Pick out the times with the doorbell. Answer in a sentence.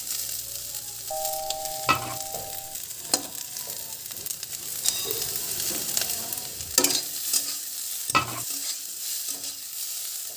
The doorbell can be heard from 1.1 to 2.8 s.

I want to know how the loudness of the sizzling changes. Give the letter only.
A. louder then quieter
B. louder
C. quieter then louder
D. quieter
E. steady
A.